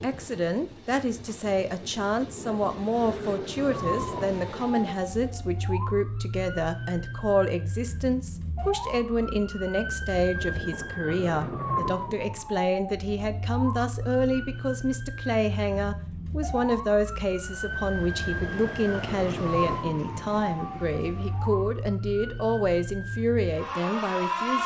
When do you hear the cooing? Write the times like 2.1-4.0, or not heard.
not heard.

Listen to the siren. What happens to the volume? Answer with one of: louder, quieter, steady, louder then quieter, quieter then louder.
steady.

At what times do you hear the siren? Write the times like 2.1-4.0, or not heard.
3.5-24.6.